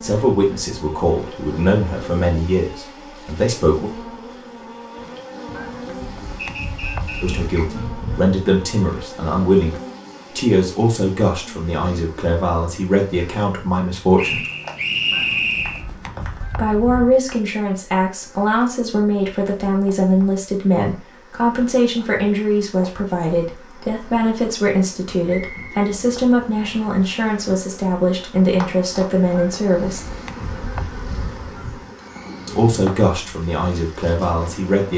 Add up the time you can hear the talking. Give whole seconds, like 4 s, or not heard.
27 s.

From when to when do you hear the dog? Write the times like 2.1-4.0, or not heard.
not heard.